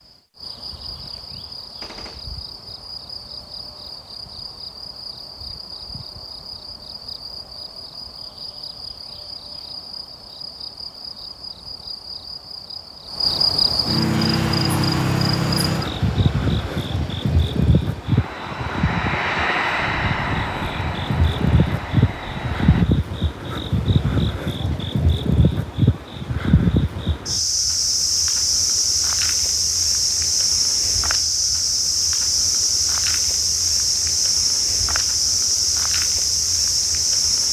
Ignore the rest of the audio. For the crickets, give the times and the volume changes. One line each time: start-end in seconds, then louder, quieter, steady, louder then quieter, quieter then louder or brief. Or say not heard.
0.0-37.4 louder.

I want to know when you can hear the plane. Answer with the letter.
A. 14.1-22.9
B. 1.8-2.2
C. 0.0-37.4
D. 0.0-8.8
A.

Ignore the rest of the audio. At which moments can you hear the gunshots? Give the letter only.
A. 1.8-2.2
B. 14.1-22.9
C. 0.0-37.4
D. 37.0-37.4
A.